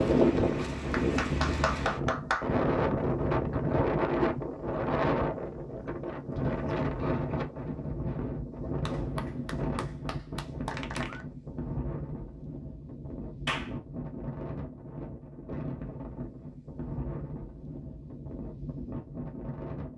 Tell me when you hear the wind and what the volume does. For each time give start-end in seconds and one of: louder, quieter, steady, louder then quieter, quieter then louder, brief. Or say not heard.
0.0-19.9 quieter.